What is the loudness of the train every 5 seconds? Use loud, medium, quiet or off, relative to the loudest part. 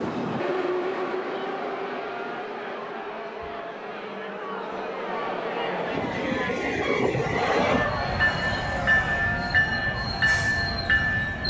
medium, loud, loud.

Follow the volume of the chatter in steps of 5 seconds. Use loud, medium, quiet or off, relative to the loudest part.
medium, loud, medium.